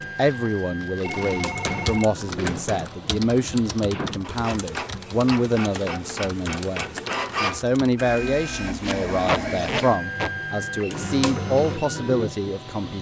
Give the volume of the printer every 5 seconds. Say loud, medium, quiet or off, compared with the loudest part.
medium, loud, loud.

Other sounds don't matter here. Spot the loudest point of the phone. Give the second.
2 s.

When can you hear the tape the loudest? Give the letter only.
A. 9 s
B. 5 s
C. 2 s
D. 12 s
A.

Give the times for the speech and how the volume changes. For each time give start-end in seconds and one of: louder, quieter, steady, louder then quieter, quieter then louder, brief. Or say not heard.
0.0-12.9 steady.